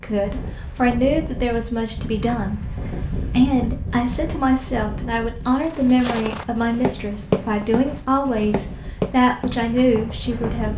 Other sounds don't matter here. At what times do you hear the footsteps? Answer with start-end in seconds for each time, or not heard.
5.5-10.7.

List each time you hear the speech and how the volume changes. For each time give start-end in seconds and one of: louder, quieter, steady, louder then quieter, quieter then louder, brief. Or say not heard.
0.0-10.7 steady.